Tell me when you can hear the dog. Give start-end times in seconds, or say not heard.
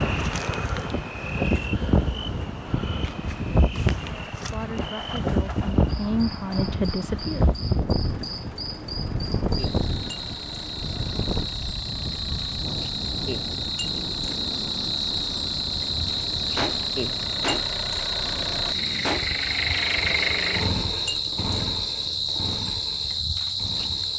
not heard.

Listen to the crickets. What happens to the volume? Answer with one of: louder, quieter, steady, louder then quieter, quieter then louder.
louder.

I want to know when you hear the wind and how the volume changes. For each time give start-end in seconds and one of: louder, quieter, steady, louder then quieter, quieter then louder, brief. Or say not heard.
0.0-19.1 quieter.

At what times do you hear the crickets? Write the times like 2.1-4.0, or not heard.
0.0-24.1.